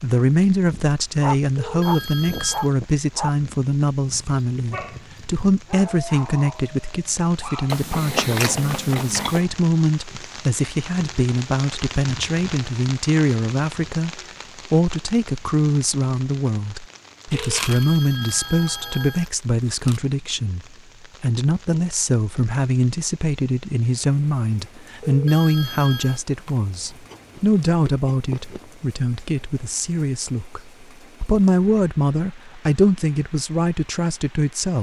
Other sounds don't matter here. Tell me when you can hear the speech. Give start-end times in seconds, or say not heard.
0.0-34.7.